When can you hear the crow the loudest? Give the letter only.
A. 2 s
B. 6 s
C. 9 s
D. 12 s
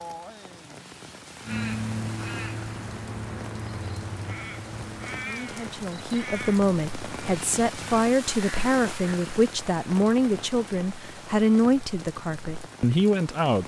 A.